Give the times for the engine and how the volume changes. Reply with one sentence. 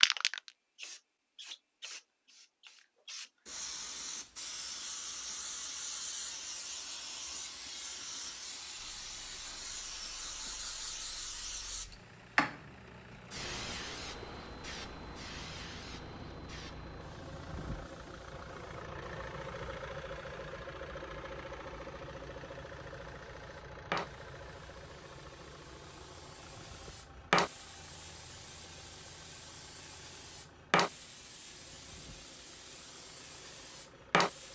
The engine can be heard from 8.8 to 34.4 s, getting louder then quieter.